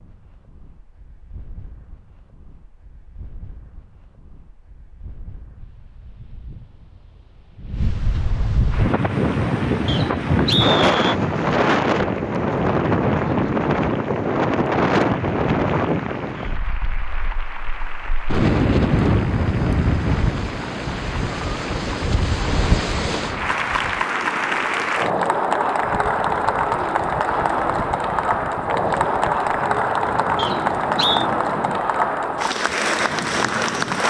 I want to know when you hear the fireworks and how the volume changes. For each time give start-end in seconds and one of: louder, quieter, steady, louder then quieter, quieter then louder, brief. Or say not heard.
not heard.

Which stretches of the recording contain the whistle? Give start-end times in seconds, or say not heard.
9.8-11.2, 30.4-31.2.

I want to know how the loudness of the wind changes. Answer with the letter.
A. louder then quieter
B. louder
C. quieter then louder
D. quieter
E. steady
A.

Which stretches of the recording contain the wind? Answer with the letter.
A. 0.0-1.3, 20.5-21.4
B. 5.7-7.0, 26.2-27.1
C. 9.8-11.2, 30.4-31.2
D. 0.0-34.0
D.